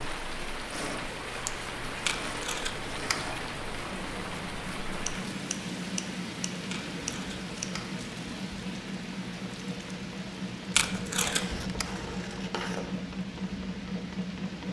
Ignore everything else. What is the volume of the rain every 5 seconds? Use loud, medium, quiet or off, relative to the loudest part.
loud, loud, medium.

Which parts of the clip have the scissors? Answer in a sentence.
The scissors can be heard from 0.9 to 2.0 s, from 5.0 to 7.7 s and from 11.2 to 12.9 s.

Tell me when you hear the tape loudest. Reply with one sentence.
The loudest moment of the tape is at 11 seconds.